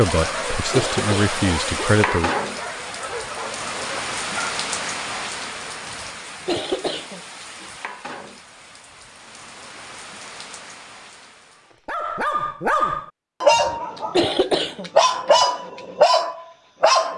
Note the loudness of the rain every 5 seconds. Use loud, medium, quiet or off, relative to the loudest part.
loud, medium, quiet, off.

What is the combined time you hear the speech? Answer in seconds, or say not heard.
2 s.